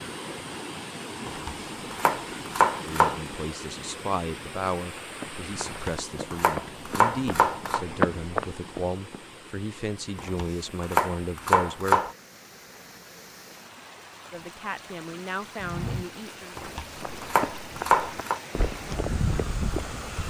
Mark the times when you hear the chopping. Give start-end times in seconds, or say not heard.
1.2-3.2, 5.7-7.8, 10.2-12.2, 16.6-18.4.